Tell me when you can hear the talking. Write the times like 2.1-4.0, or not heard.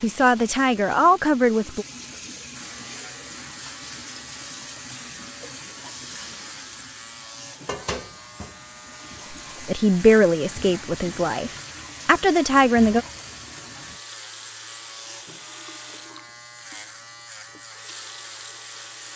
0.0-1.9, 9.7-13.1.